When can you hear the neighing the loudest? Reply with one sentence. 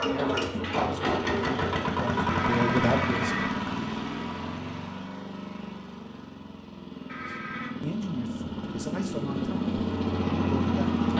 The volume of the neighing peaks at 3 seconds.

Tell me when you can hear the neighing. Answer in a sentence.
You can hear the neighing from 2.2 to 3.5 s and from 7.0 to 7.7 s.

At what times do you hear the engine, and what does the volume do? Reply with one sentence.
You can hear the engine from 0.0 to 11.1 s, getting quieter then louder.